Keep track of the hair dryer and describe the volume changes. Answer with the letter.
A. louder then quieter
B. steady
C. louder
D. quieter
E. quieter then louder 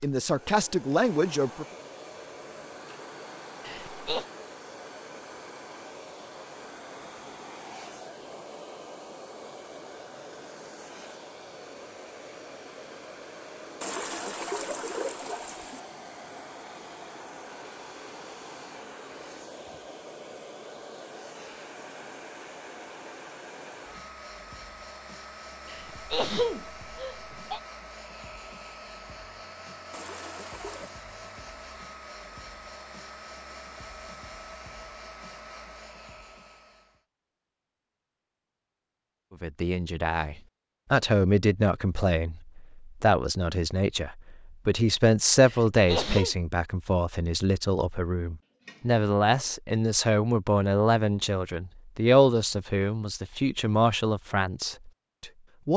B.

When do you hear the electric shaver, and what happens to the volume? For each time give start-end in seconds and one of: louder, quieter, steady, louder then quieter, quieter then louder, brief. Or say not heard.
not heard.